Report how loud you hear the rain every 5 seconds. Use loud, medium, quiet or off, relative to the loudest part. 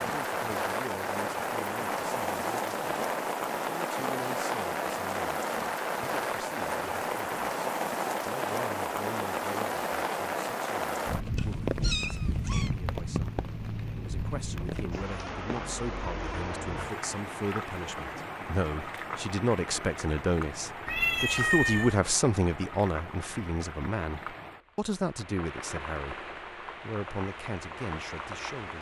loud, loud, loud, medium, medium, medium.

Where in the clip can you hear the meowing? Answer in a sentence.
You can hear the meowing from 11.3 to 12.7 s and from 20.9 to 21.9 s.